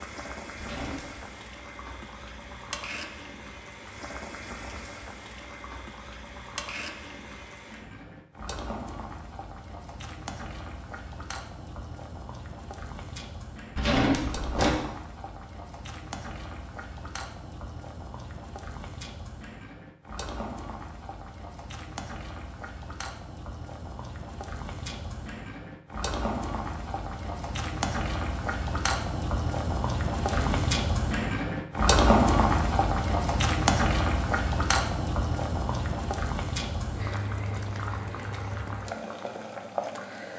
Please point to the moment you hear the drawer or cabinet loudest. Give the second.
14 s.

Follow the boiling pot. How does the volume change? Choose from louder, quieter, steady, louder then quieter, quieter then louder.
louder.